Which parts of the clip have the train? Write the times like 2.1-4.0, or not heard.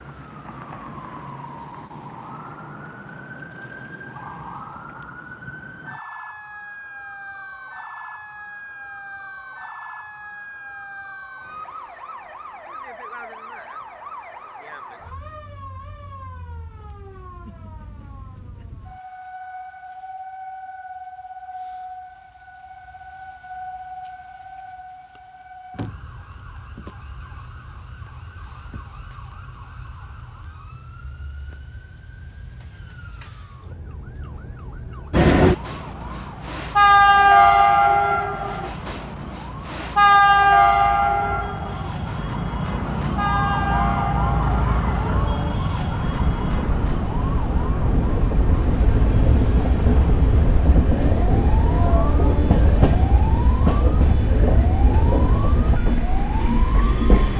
35.1-57.3.